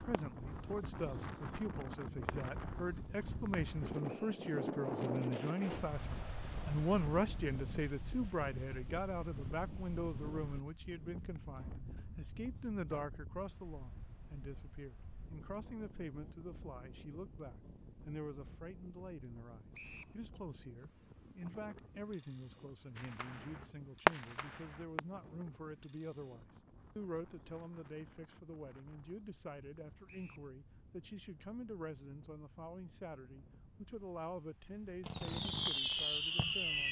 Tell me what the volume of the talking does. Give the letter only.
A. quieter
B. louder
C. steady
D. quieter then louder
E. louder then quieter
A.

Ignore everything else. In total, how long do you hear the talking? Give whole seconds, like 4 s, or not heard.
37 s.